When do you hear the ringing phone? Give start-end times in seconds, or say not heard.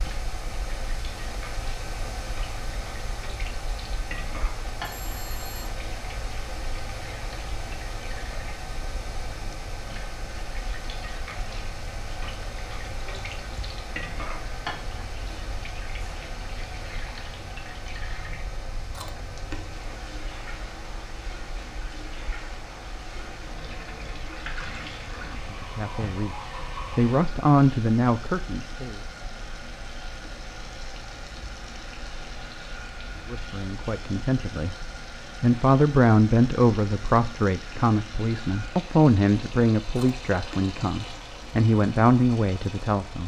4.8-5.7.